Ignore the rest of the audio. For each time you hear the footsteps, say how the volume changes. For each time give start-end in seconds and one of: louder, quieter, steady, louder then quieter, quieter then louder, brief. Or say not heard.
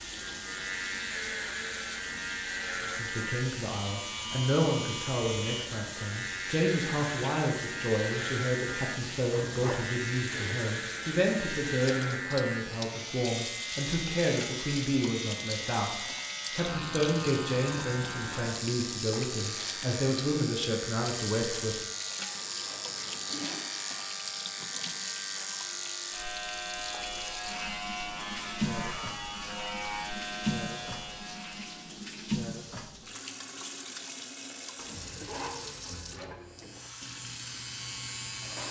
not heard.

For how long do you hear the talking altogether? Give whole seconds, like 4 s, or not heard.
19 s.